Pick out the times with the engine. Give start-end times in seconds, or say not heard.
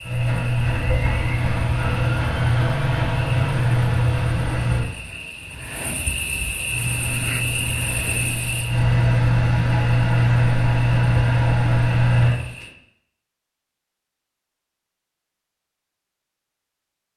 0.0-4.8, 6.7-12.3.